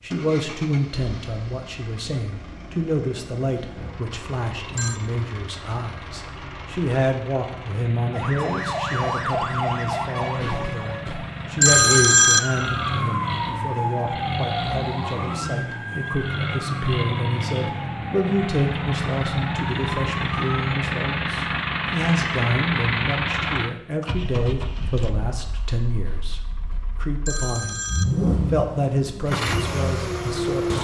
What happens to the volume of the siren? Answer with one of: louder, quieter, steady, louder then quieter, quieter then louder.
quieter.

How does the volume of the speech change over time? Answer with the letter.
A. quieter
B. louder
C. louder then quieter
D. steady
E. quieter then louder
D.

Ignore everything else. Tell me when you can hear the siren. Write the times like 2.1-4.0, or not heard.
8.1-20.8.